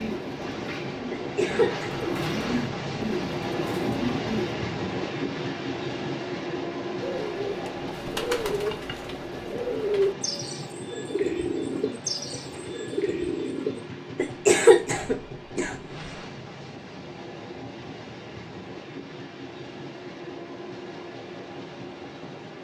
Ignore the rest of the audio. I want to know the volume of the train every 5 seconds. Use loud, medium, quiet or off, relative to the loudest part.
loud, loud, medium, medium, medium.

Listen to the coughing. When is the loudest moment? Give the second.
15 s.